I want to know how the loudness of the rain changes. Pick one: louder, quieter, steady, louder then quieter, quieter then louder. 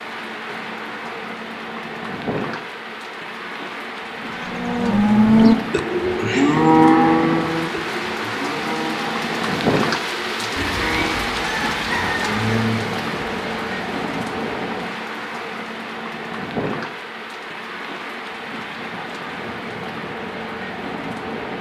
louder then quieter.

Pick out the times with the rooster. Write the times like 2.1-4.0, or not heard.
10.6-12.3.